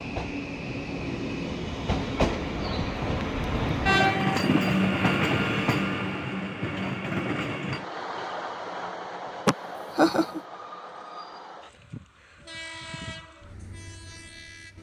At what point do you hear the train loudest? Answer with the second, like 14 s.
4 s.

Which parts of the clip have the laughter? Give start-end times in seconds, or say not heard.
9.4-10.4.